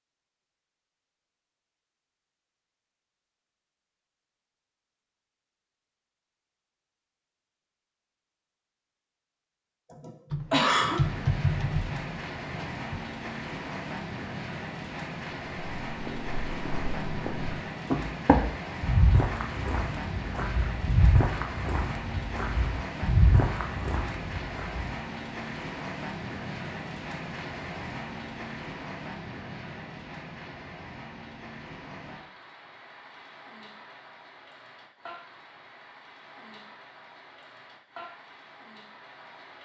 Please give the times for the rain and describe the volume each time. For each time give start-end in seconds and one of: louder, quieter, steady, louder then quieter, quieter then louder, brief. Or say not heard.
10.8-39.6 quieter.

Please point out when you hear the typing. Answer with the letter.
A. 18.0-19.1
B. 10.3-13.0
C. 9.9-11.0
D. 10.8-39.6
B.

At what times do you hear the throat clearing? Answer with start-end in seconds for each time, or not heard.
9.9-11.0.